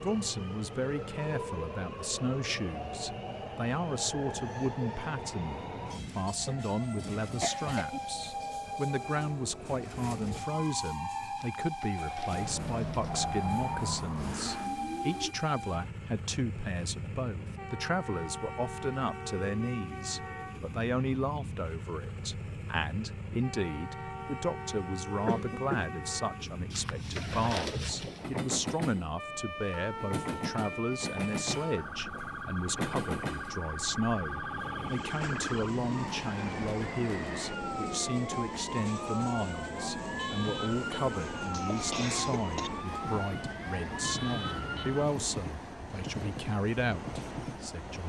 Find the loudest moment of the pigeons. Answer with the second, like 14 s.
28 s.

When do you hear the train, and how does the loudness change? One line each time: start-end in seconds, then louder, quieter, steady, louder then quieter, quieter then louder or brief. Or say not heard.
0.0-48.0 steady.